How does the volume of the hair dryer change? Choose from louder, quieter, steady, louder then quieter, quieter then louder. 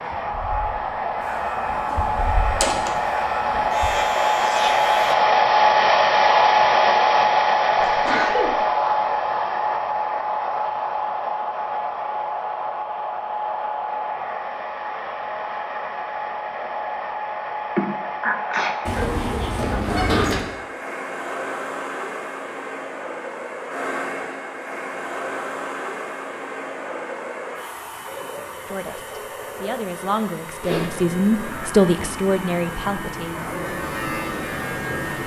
quieter.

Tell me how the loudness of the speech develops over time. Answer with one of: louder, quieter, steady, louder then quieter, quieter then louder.
louder then quieter.